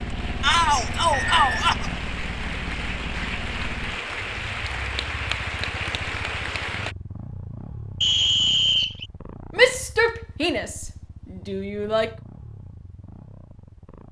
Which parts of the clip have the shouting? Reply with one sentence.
The shouting can be heard from 0.4 to 1.9 s and from 9.6 to 12.1 s.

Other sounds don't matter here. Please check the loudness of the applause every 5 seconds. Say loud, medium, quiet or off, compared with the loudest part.
loud, loud, off.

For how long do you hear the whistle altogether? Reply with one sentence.
You can hear the whistle for 2 seconds altogether.